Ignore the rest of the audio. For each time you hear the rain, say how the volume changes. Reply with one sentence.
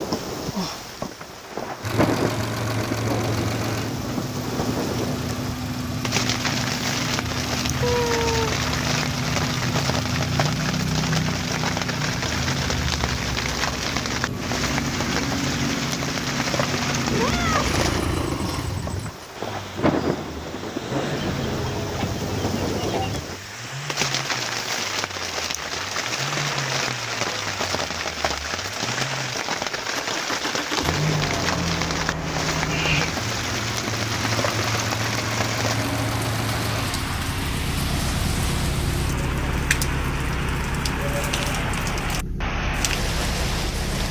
You can hear the rain from 0.0 to 44.0 s, at a steady volume.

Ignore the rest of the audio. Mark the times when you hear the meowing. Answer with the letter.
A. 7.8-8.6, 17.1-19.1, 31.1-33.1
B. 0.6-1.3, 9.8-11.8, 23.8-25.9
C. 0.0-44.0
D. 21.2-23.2
A.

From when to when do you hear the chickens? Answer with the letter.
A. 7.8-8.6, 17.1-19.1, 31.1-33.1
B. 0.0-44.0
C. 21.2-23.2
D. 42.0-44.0
C.